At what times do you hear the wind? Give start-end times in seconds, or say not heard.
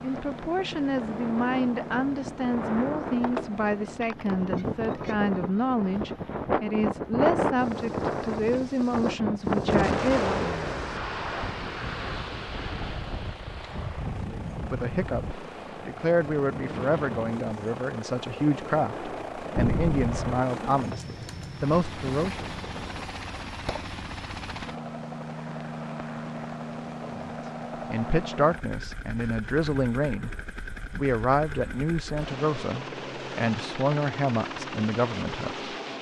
0.0-23.1.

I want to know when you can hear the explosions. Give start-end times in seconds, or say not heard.
9.7-11.1, 19.6-20.3.